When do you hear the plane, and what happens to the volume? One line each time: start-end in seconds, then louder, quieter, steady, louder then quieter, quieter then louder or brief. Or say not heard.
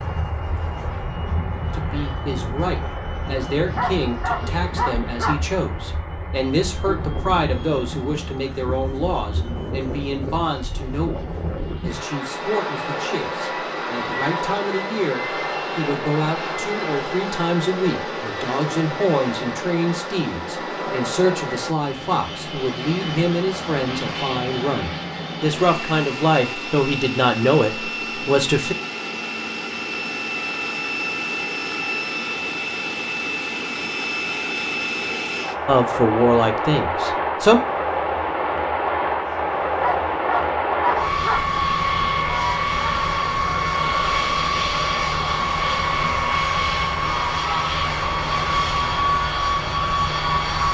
0.0-50.6 louder.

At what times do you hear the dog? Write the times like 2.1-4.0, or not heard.
3.8-5.5, 39.8-41.5.